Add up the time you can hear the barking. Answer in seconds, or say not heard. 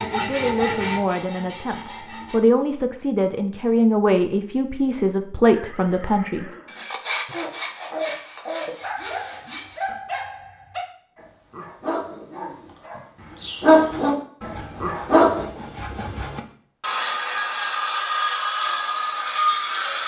8 s.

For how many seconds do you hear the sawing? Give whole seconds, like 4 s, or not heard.
12 s.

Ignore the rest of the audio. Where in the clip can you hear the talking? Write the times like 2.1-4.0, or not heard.
0.0-6.5.